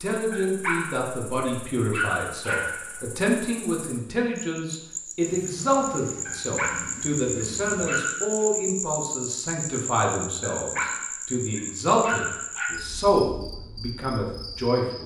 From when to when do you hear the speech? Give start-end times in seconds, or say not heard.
0.0-15.0.